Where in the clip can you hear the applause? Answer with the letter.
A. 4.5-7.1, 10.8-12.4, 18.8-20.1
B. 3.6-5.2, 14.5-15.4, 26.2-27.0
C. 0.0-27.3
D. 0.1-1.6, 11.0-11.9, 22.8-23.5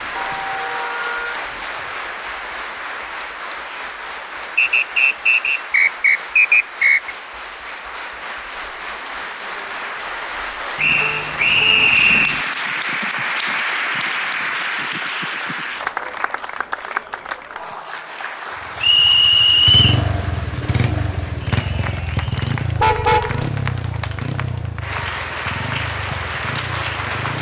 C.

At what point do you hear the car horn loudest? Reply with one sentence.
The loudest moment of the car horn is at 23 seconds.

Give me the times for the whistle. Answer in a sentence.
The whistle can be heard from 4.5 to 7.1 s, from 10.8 to 12.4 s and from 18.8 to 20.1 s.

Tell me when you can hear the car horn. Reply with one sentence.
You can hear the car horn from 0.1 to 1.6 s, from 11.0 to 11.9 s and from 22.8 to 23.5 s.